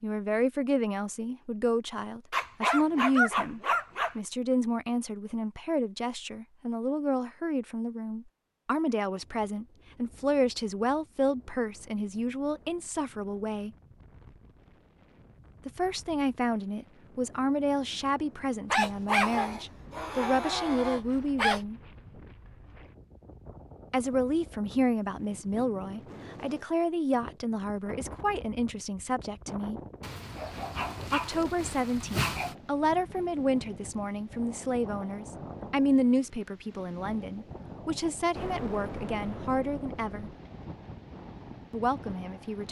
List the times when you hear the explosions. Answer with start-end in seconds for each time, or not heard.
38.4-40.4.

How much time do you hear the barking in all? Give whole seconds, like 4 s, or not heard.
7 s.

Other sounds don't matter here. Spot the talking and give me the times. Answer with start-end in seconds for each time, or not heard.
0.0-13.7, 15.7-21.8, 23.9-29.8, 31.1-40.3, 41.7-42.6.